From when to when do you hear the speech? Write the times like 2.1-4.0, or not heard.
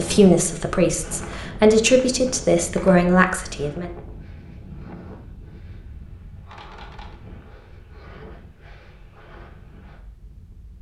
0.0-3.9.